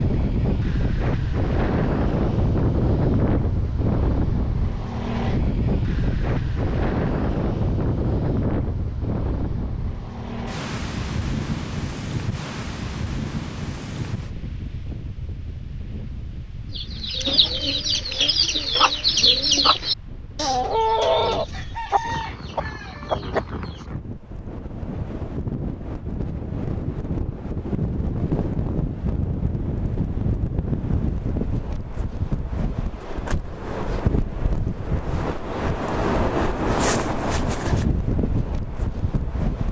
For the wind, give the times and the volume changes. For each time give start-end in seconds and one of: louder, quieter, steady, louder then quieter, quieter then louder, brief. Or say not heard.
0.0-39.6 quieter then louder.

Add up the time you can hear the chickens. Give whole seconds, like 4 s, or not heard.
7 s.